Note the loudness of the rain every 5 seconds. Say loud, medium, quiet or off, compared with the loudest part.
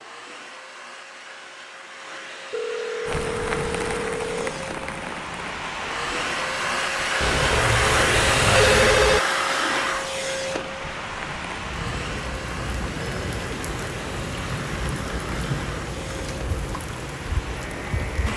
loud, medium, loud, loud.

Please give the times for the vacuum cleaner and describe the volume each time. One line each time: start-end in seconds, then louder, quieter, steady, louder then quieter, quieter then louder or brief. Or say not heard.
0.0-18.3 louder then quieter.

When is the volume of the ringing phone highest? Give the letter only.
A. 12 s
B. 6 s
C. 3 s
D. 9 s
D.